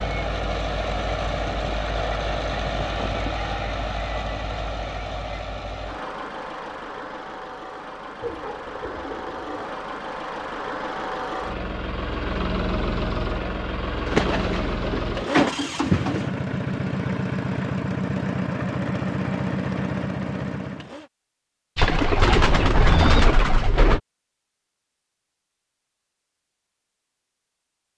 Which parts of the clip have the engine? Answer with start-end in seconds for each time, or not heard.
0.0-21.1.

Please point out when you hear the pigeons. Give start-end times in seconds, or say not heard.
1.3-3.3, 8.2-9.8, 14.1-16.3, 21.8-24.0.